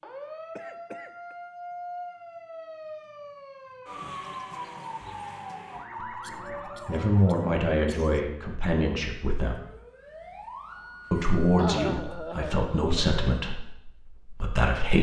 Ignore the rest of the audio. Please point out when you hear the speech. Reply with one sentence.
You can hear the speech from 6.8 to 9.6 s and from 11.1 to 14.9 s.